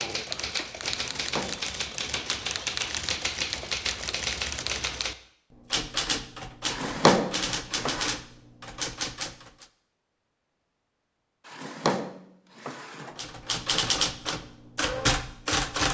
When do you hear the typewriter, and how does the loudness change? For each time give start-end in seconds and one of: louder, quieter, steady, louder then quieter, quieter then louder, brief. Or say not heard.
0.0-9.7 steady
13.2-15.8 brief.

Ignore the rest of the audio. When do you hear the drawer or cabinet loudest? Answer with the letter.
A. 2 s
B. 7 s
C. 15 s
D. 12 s
B.